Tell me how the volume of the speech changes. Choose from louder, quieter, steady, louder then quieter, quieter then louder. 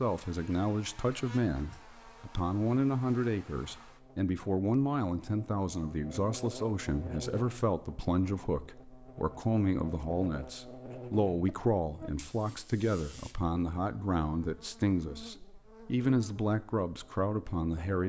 steady.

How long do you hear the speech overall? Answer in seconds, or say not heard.
18 s.